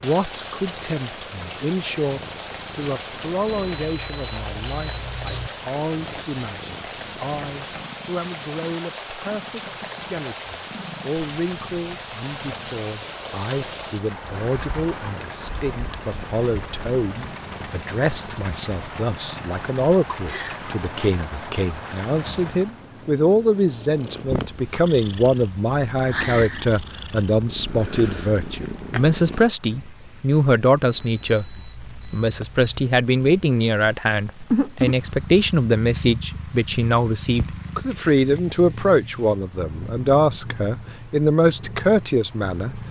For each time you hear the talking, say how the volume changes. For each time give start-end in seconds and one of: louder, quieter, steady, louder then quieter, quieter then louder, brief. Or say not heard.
0.0-42.8 louder.